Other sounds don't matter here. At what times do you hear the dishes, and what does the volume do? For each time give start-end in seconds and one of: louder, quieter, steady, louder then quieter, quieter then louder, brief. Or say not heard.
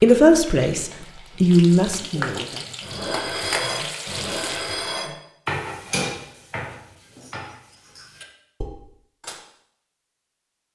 2.8-9.4 quieter.